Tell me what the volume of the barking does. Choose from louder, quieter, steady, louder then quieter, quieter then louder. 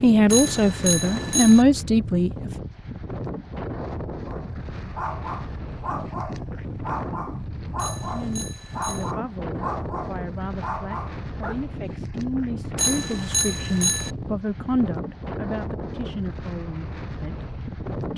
steady.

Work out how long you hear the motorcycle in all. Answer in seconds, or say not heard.
not heard.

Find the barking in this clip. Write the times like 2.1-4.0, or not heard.
4.2-11.9.